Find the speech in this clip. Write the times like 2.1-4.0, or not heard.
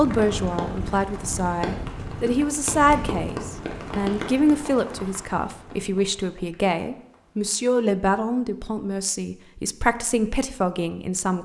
0.0-11.3.